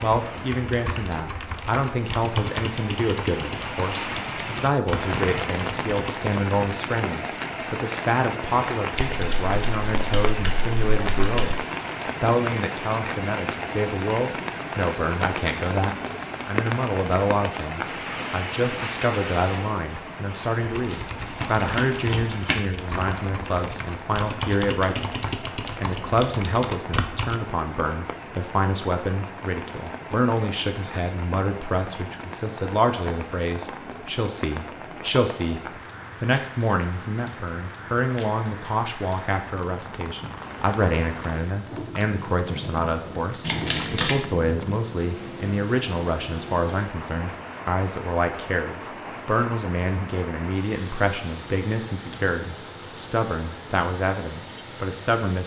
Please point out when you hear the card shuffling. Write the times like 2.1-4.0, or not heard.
8.9-11.6, 20.9-22.6, 43.4-44.2.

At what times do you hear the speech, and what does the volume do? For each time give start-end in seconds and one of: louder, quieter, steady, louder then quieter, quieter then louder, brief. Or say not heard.
0.0-55.4 steady.